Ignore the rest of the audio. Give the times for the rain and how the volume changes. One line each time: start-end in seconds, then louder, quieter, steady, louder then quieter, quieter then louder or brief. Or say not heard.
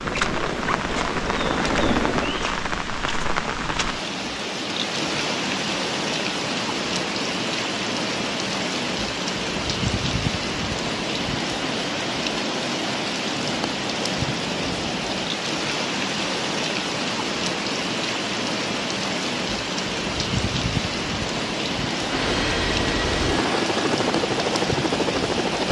0.0-25.6 steady.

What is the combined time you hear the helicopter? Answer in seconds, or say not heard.
6 s.